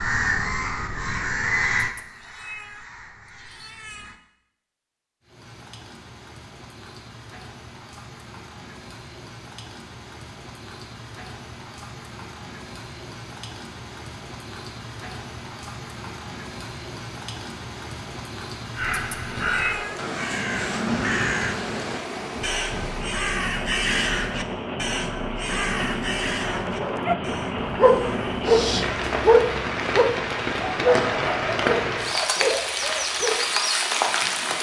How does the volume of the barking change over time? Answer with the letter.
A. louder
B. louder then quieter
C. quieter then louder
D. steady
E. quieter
E.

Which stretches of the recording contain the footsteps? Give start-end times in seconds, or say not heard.
not heard.